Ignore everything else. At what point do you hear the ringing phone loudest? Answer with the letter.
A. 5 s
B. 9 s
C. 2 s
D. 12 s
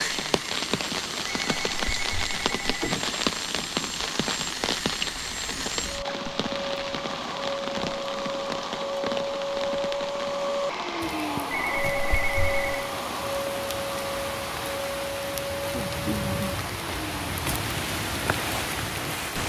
D.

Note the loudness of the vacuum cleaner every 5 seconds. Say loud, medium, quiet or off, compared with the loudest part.
medium, loud, loud, medium.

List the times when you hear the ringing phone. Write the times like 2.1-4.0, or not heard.
1.4-3.0, 11.6-12.8.